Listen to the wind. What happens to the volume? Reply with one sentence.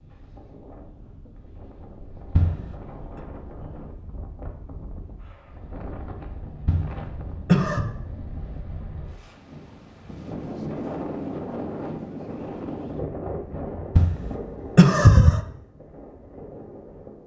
The volume of the wind goes up, then down.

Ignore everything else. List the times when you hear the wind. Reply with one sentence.
You can hear the wind from 0.0 to 17.2 s.